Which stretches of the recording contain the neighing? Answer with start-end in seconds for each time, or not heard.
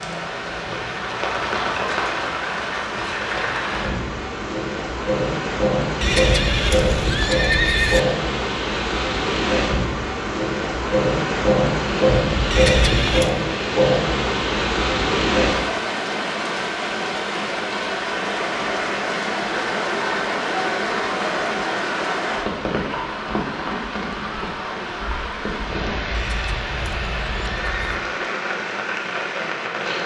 6.0-8.0, 12.5-13.3, 26.1-28.0.